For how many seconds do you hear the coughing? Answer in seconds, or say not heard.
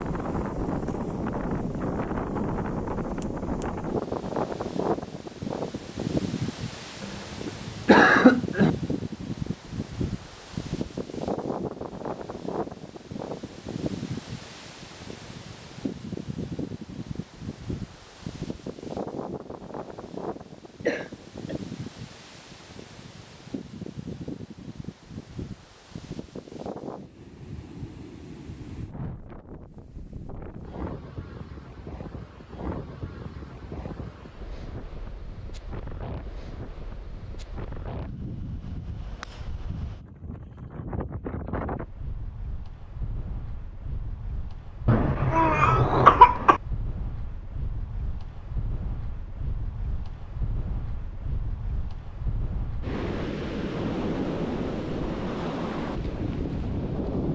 4 s.